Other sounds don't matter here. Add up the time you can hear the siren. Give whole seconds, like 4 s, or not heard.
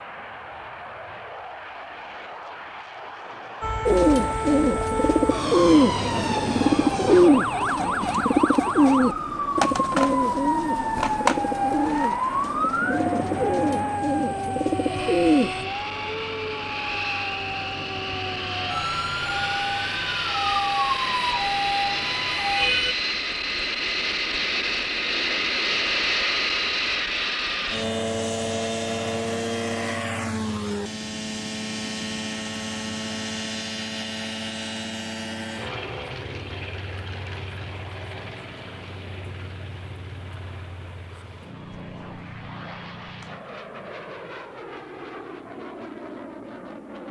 19 s.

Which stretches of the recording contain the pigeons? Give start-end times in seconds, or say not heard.
3.9-15.7.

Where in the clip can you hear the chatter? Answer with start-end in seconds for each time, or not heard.
not heard.